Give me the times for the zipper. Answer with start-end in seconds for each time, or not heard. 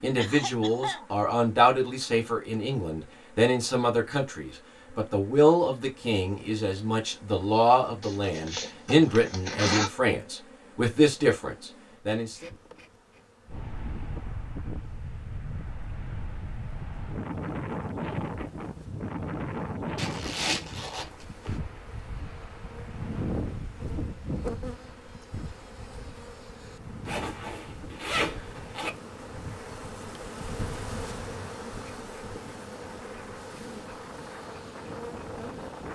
8.0-9.9, 19.9-21.6, 27.1-28.9.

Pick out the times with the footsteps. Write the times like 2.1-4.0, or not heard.
not heard.